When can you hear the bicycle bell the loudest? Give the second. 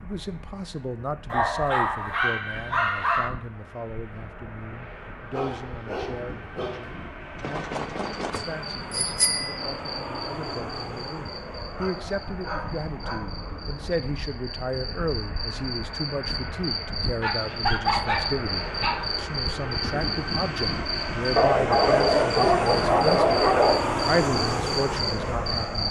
9 s.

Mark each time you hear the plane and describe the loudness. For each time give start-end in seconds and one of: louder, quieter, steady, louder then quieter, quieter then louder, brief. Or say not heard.
0.0-25.8 louder.